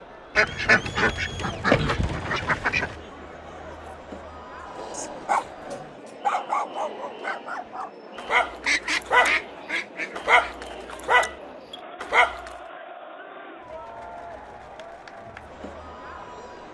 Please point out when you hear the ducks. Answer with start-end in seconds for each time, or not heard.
0.3-3.0, 8.6-10.6.